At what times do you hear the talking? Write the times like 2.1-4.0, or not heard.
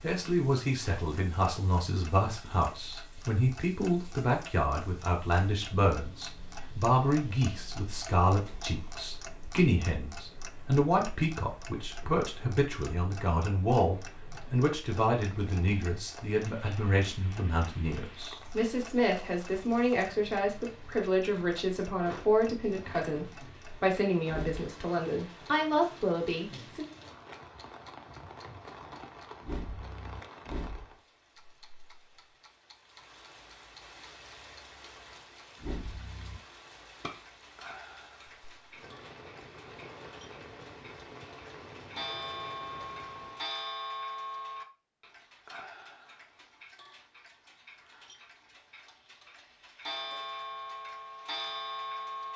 0.0-26.9.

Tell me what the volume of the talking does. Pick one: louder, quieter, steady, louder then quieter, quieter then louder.
steady.